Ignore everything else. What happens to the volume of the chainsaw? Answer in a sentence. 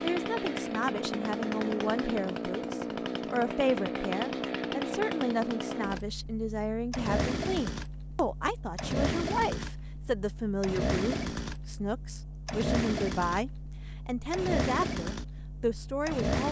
The volume of the chainsaw stays about the same.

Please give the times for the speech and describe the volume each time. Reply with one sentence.
The speech can be heard from 0.0 to 16.4 s, at a steady volume.